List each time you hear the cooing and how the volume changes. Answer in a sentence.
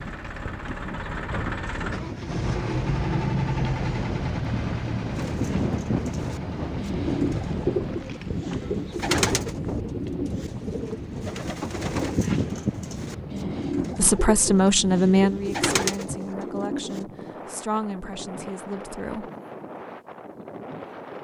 You can hear the cooing from 5.1 to 17.1 s, at a steady volume.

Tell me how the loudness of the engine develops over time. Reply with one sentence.
The loudness of the engine goes up, then down.